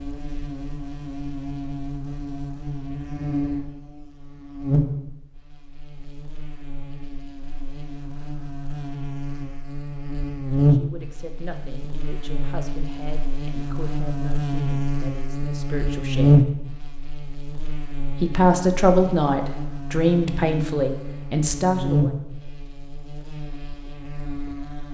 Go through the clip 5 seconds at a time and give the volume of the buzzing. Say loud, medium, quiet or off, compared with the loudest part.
medium, quiet, loud, loud, medium.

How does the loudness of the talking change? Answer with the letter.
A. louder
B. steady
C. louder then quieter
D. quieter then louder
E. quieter
A.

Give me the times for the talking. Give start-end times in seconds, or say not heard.
10.7-16.5, 18.1-22.1.